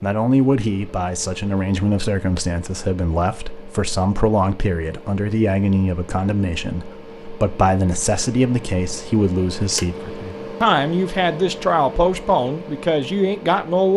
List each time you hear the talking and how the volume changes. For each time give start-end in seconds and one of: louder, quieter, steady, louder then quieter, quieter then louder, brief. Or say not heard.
0.0-13.9 steady.